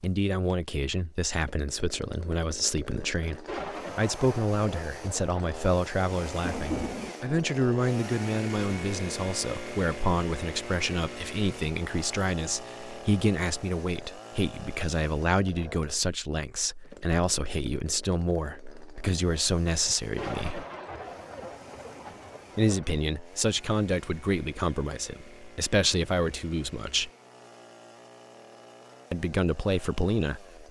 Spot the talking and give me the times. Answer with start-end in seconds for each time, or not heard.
0.0-20.6, 22.6-27.1, 29.1-30.6.